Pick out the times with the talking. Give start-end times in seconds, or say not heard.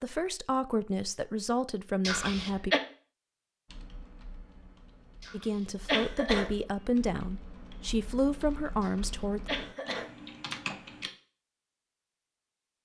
0.0-2.8, 5.3-9.4.